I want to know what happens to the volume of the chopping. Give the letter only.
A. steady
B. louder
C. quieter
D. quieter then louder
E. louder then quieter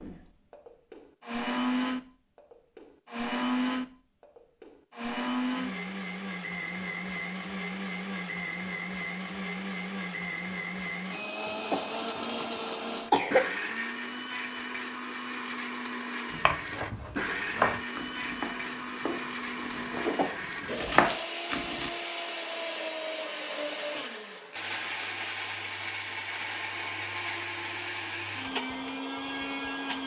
D.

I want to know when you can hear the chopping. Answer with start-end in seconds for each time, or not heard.
16.3-21.9.